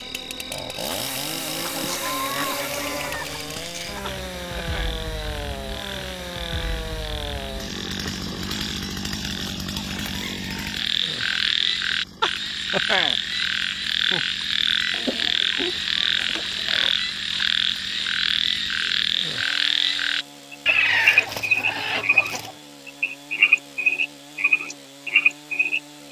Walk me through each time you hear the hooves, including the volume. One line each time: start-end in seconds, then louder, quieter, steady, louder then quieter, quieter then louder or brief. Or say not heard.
not heard.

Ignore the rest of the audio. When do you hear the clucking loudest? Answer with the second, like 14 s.
21 s.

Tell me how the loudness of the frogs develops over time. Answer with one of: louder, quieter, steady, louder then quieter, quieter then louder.
louder.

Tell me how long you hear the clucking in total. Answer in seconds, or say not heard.
8 s.